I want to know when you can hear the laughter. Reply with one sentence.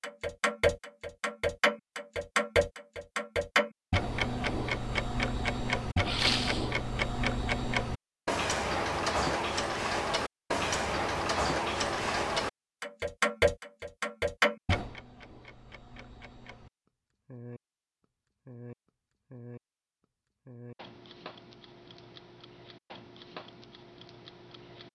You can't hear the laughter here.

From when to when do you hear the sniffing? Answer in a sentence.
The sniffing can be heard from 6.0 to 6.7 s.